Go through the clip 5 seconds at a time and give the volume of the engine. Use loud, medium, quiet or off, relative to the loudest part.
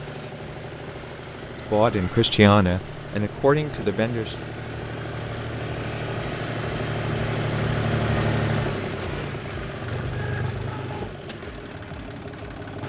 medium, loud, medium.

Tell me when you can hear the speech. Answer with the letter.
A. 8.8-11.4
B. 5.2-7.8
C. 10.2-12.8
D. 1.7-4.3
D.